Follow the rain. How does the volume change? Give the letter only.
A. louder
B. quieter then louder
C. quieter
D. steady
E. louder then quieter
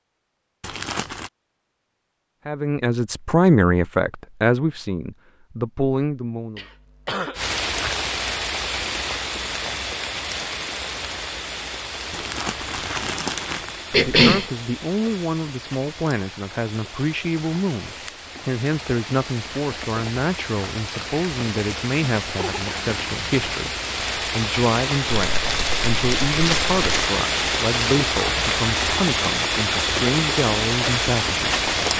B.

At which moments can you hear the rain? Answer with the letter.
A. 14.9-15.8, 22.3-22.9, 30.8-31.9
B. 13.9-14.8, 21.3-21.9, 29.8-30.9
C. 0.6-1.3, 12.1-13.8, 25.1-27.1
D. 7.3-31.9
D.